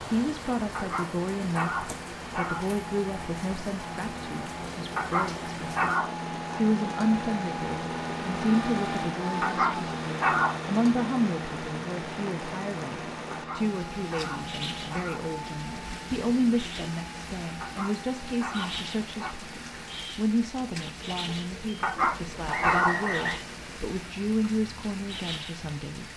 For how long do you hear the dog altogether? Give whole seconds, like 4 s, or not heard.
10 s.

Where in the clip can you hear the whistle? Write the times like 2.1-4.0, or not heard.
22.4-23.4.